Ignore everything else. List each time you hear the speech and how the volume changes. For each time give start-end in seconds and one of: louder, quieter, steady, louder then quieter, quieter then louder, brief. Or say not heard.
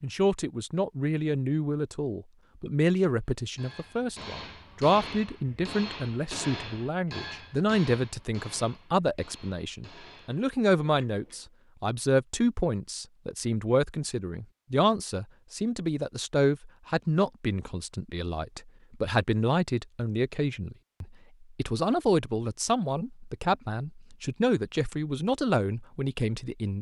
0.0-26.7 steady.